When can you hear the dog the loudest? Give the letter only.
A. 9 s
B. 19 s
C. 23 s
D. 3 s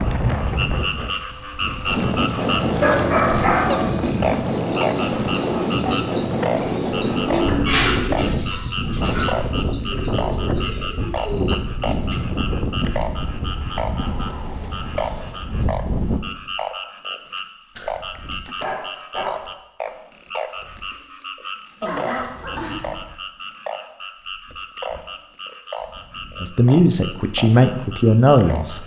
D.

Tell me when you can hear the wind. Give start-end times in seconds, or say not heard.
0.0-16.2.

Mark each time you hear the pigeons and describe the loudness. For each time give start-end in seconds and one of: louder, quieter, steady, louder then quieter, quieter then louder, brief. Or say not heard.
3.1-12.3 louder then quieter.